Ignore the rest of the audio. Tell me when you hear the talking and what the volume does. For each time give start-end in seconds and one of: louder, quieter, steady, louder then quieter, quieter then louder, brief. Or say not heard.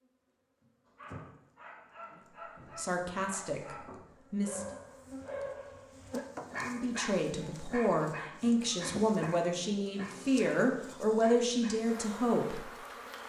2.8-4.7 brief
6.6-12.7 steady.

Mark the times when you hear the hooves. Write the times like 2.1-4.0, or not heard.
not heard.